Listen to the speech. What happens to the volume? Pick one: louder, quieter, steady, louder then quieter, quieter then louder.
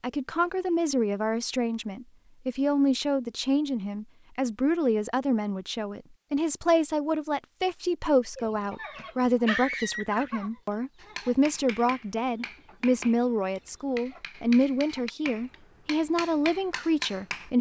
steady.